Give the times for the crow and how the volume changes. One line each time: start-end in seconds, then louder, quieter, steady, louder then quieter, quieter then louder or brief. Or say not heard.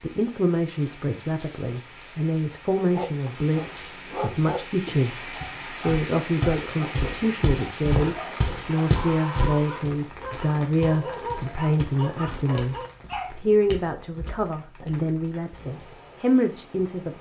not heard.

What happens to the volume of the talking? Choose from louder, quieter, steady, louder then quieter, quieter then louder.
steady.